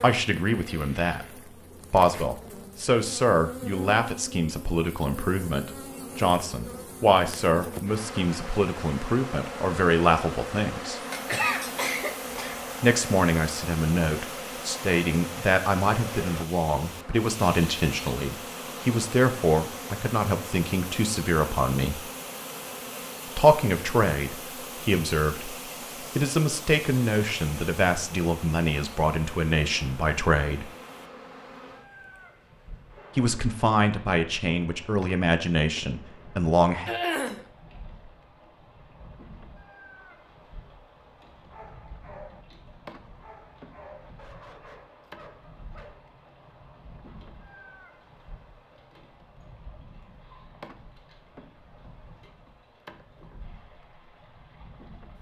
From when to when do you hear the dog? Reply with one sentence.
The dog can be heard from 41.1 to 46.1 s.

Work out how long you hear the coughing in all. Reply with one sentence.
The coughing can be heard for 2 seconds in total.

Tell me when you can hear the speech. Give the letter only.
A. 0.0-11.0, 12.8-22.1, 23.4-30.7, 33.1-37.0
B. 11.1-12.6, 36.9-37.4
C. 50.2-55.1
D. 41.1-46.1
A.